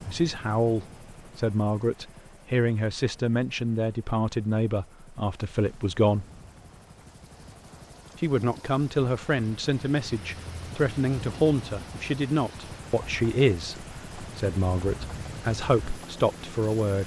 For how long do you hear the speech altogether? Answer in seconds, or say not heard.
15 s.